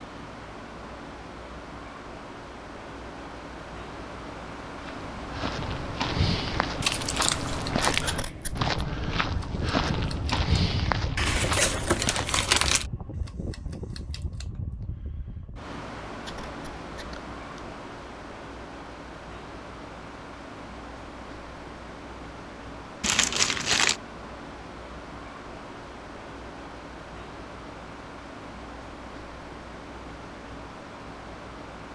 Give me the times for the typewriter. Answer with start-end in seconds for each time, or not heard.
not heard.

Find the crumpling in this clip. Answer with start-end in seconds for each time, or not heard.
6.8-8.1, 11.2-12.8, 23.0-24.0.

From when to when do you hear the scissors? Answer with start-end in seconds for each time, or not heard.
8.1-8.8, 16.2-17.7.